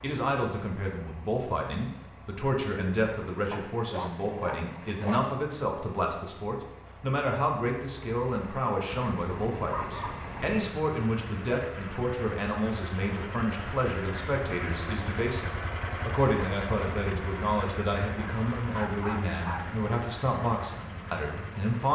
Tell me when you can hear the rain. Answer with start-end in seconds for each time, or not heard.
not heard.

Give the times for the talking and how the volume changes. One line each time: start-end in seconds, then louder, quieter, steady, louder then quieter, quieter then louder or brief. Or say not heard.
0.0-21.9 steady.